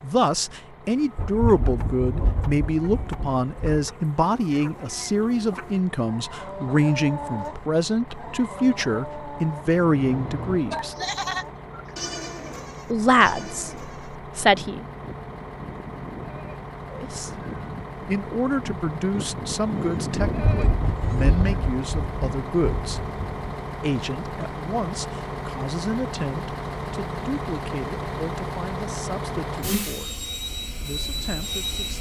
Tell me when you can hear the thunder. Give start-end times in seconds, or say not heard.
1.1-3.9, 20.2-23.5.